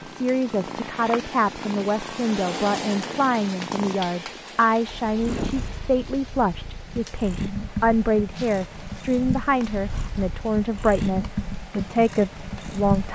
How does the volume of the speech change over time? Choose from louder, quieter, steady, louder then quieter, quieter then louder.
steady.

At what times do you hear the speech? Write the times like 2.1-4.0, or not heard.
0.0-13.0.